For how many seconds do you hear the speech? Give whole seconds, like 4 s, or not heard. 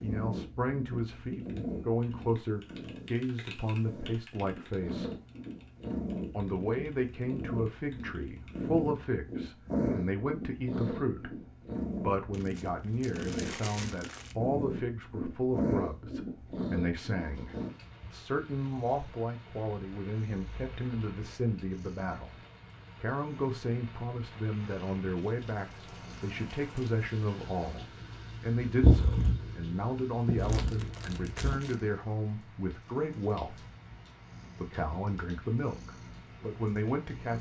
34 s.